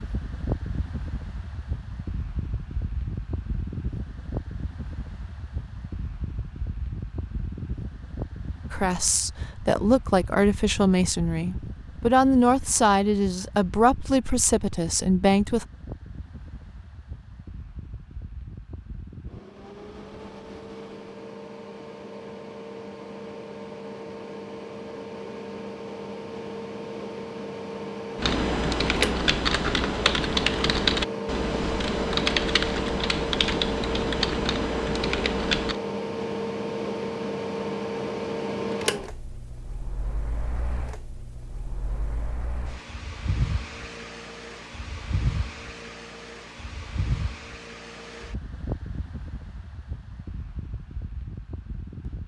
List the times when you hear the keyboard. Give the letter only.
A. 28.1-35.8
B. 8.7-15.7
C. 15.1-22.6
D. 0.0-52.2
A.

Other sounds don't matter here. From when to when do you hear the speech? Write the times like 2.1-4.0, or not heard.
8.7-15.7.